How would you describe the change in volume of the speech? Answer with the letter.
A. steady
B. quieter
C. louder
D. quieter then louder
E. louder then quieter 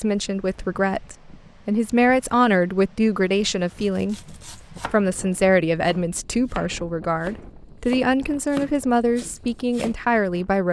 A.